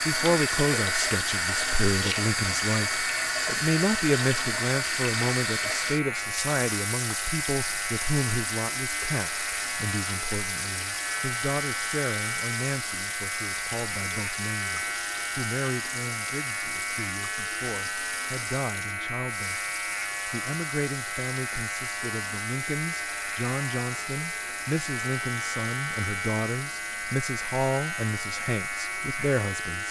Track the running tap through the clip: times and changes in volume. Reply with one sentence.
The running tap can be heard from 0.0 to 29.8 s, getting quieter.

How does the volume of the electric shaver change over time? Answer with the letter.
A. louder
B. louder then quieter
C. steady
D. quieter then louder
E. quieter
C.